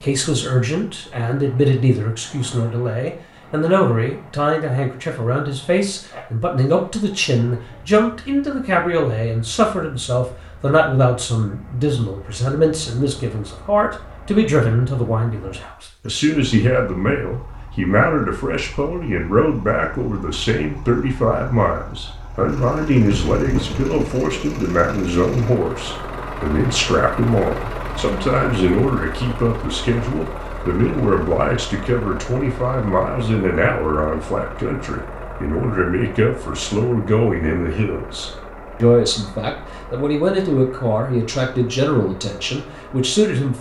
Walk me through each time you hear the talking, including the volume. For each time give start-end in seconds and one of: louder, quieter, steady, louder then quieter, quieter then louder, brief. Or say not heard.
0.0-43.5 steady.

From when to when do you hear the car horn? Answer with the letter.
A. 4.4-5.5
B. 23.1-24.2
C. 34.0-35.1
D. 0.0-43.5
B.